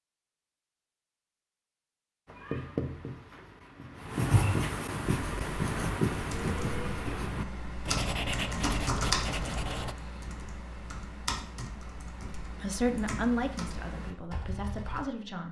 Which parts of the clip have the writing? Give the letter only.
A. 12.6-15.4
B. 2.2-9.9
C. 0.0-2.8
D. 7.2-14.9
B.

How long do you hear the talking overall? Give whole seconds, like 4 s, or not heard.
3 s.